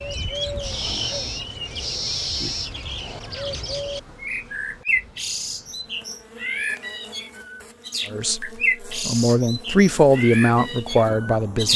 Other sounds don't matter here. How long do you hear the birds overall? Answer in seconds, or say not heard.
12 s.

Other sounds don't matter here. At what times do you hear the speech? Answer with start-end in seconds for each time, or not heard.
8.1-11.7.